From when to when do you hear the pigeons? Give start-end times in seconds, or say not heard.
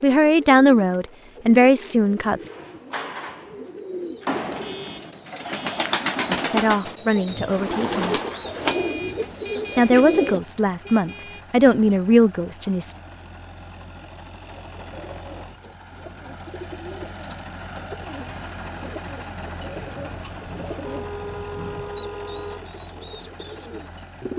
0.0-10.4, 14.6-24.3.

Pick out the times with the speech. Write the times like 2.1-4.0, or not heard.
0.0-2.5, 6.3-8.2, 9.8-12.9.